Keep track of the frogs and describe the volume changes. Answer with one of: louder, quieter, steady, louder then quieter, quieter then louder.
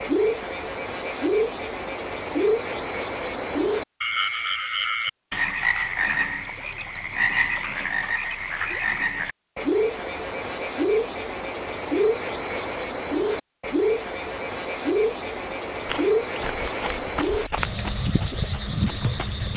steady.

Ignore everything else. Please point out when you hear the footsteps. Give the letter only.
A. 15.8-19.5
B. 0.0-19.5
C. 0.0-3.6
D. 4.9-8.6
A.